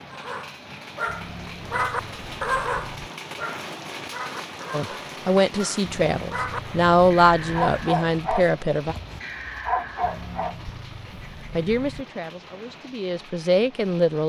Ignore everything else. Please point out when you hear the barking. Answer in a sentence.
You can hear the barking from 0.1 to 10.7 s.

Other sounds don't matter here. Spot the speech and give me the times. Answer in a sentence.
The speech can be heard from 4.7 to 8.9 s and from 11.5 to 14.2 s.